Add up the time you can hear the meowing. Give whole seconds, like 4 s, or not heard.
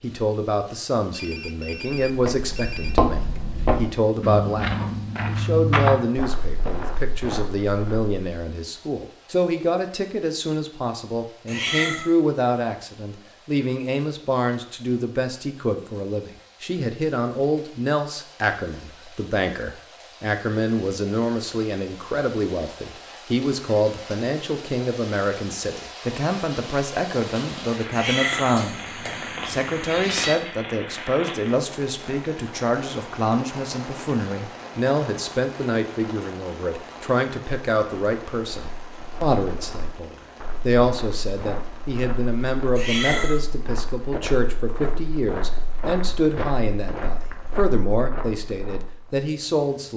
4 s.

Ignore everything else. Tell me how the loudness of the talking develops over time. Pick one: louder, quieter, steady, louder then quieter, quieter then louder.
steady.